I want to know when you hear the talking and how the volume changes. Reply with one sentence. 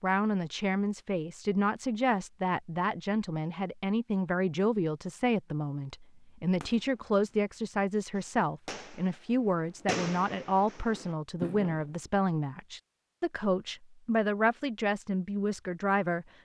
You can hear the talking from 0.0 to 16.2 s, at a steady volume.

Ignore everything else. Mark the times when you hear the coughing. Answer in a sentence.
The coughing can't be heard in this clip.